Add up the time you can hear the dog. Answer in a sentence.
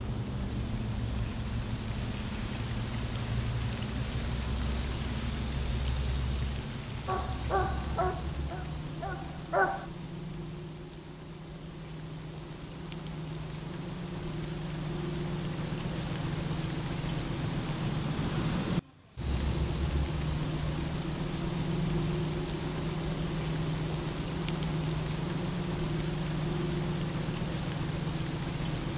You can hear the dog for 3 seconds altogether.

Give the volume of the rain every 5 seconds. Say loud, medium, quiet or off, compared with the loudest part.
loud, medium, medium, loud, loud, loud.